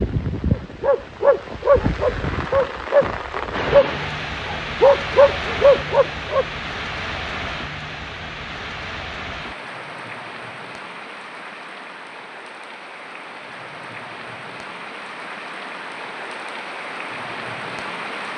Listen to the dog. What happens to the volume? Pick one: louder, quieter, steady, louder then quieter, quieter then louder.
steady.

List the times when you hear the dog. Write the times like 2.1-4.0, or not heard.
0.6-6.5.